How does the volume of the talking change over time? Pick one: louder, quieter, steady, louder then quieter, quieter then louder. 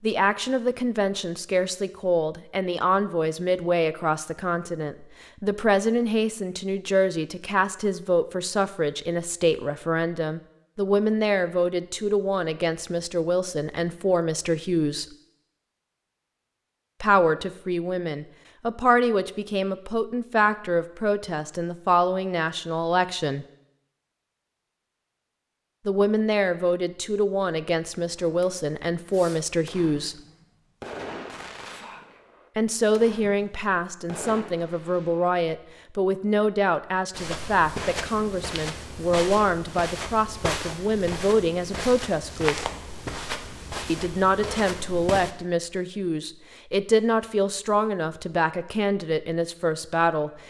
steady.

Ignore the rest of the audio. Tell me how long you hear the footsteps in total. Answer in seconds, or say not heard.
8 s.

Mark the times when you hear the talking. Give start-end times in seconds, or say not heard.
0.0-15.1, 17.0-23.4, 25.9-30.1, 32.5-42.7, 43.9-50.3.